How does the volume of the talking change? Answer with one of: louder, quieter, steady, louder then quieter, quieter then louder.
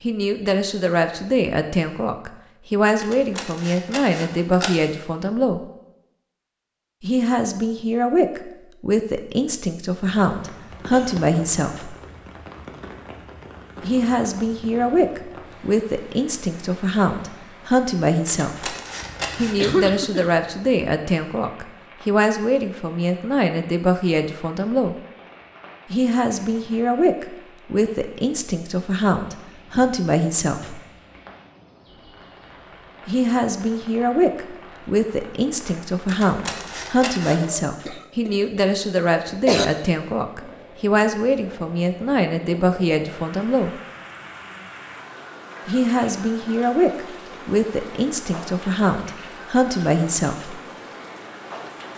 steady.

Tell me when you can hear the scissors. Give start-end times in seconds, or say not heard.
3.0-4.7, 18.2-19.6, 36.0-37.5.